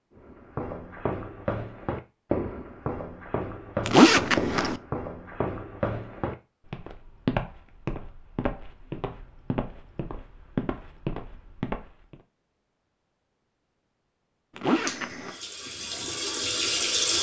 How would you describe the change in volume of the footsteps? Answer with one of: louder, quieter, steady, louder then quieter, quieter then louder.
steady.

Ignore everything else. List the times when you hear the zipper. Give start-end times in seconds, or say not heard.
3.9-4.8, 14.6-15.3.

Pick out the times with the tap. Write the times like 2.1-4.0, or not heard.
14.8-17.1.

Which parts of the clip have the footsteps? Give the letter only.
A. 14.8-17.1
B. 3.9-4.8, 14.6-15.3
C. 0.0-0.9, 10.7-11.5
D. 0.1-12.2
D.